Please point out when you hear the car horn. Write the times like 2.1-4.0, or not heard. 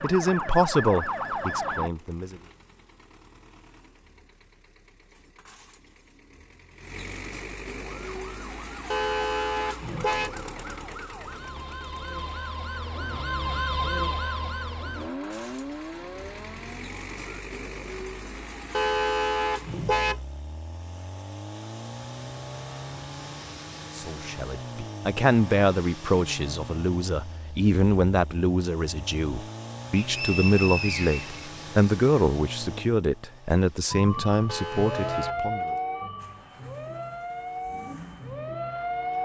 8.9-10.3, 18.7-20.1, 34.5-35.4.